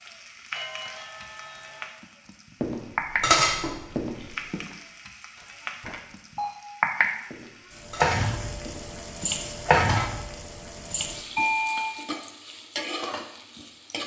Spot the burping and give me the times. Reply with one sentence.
The burping can't be heard in this clip.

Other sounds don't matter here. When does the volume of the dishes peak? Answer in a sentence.
The loudest moment of the dishes is at 3 seconds.